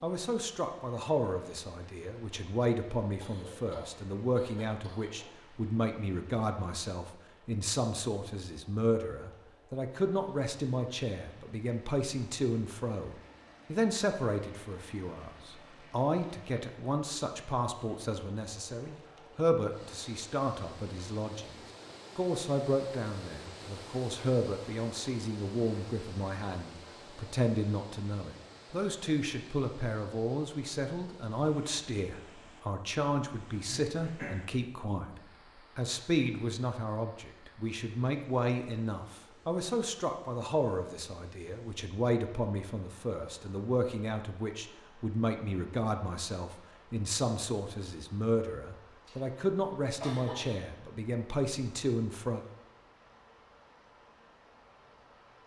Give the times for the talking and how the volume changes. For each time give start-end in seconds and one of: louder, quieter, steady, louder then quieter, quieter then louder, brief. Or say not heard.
0.0-52.5 steady.